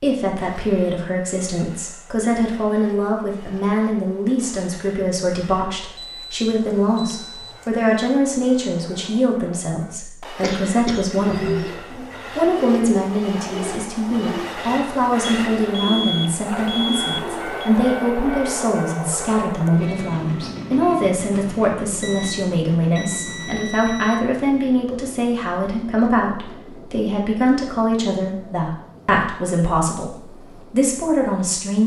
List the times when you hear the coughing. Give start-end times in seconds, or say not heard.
10.4-11.1.